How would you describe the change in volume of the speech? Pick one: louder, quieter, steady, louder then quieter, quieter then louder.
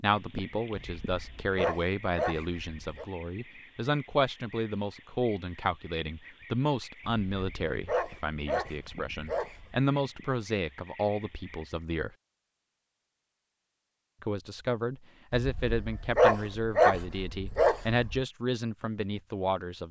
steady.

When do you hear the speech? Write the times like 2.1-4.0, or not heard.
0.0-12.1, 14.2-19.8.